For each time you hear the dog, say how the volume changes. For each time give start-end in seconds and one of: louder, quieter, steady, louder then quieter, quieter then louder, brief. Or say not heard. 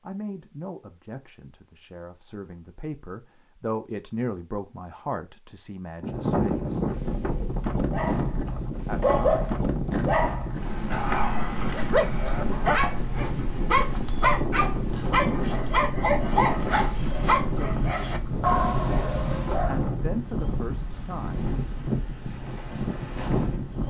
7.9-19.9 steady.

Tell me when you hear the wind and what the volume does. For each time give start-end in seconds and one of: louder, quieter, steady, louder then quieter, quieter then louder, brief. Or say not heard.
6.0-23.8 steady.